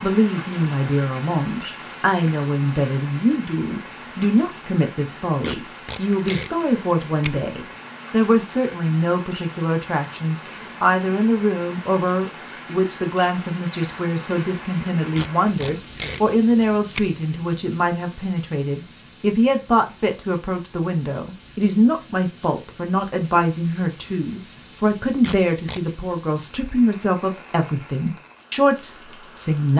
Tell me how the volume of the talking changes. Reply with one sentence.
The volume of the talking stays about the same.